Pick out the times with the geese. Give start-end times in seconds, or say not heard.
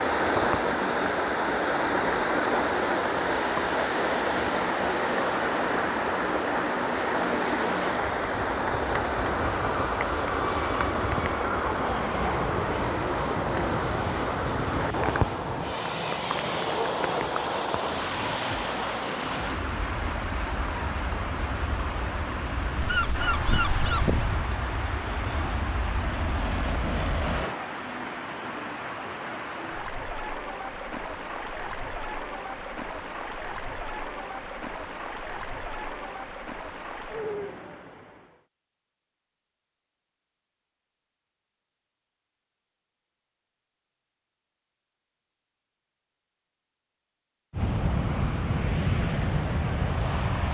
22.8-24.4.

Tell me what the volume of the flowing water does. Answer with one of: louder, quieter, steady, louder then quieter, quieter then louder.
quieter.